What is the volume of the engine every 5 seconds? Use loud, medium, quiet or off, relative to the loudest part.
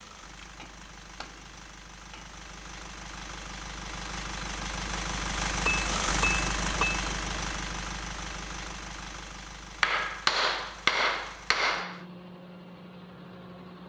medium, loud, quiet.